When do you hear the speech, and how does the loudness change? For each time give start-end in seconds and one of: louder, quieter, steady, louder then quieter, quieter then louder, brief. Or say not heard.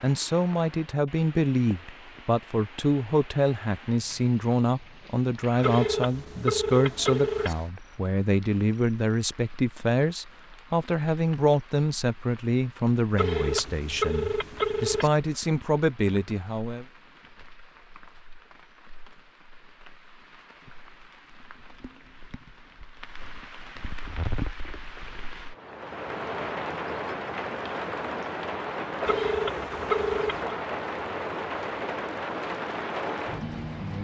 0.0-16.9 steady.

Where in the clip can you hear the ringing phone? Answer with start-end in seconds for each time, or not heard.
5.6-7.5, 13.2-15.1, 29.1-30.6.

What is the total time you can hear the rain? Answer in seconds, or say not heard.
34 s.